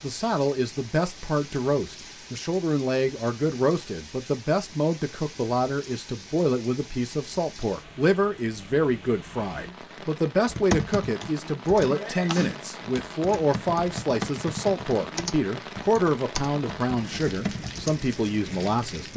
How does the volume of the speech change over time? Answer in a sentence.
The loudness of the speech stays about the same.